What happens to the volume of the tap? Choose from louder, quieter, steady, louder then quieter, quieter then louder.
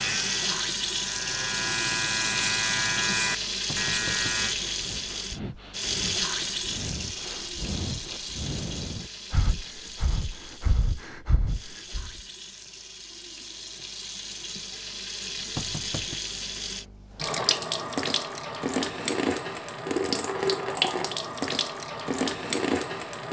quieter then louder.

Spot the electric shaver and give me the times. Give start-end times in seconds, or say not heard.
0.0-4.5.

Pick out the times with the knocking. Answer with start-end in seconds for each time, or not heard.
3.6-4.3, 15.6-16.2.